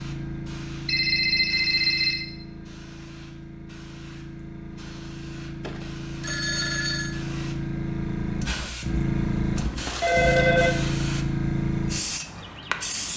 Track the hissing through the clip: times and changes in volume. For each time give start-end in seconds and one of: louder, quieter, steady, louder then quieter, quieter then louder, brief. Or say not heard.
0.0-13.1 louder.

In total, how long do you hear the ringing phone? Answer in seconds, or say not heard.
4 s.